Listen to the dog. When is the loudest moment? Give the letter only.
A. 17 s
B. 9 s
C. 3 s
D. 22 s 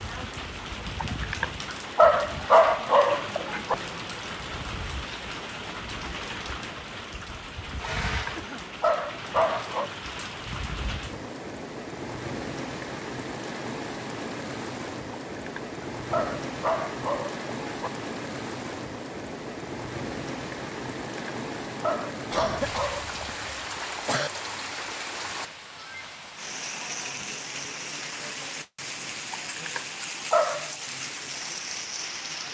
C.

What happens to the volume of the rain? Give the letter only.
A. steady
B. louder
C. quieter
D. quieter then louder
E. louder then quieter
A.